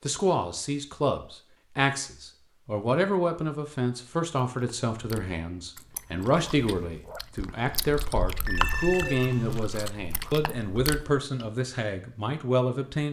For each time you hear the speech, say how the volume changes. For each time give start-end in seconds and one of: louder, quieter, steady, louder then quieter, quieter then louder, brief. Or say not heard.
0.0-13.0 steady.